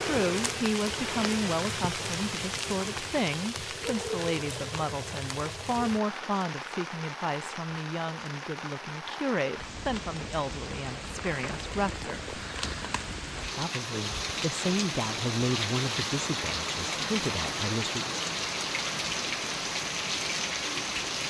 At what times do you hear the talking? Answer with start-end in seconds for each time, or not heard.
0.0-12.3, 13.5-18.1.